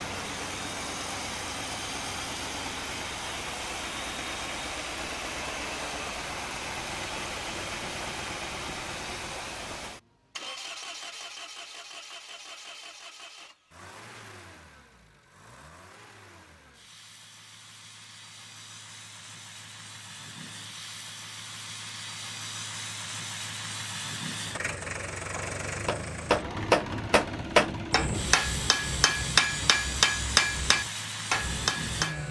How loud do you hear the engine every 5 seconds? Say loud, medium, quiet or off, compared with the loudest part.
loud, loud, medium, quiet, loud, loud, loud.